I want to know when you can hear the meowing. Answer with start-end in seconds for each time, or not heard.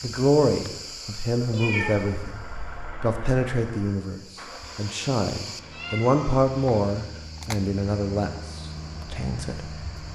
1.5-2.9, 5.7-6.3.